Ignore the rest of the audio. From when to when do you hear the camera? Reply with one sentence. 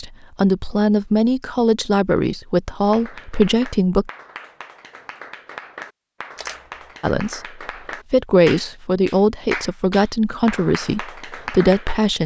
You can hear the camera from 6.3 to 7.0 s.